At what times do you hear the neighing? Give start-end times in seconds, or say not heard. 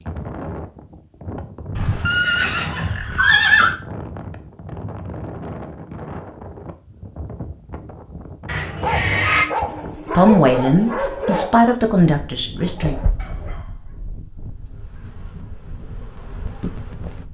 1.8-3.8, 8.4-9.4, 12.8-13.6.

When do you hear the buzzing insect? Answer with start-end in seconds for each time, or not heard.
14.5-17.2.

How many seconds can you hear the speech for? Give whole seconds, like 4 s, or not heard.
3 s.